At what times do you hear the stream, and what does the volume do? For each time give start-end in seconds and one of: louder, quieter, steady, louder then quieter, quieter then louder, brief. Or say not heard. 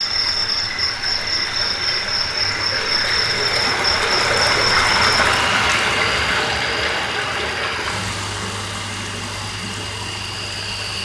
0.0-11.0 louder then quieter.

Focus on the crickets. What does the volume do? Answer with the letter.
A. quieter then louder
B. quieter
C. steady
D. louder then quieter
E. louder
B.